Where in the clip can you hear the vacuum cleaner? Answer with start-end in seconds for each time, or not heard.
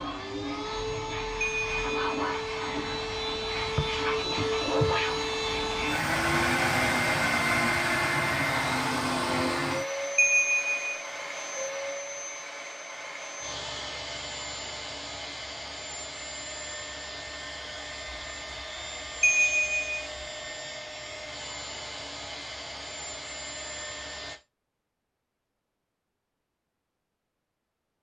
0.0-24.4.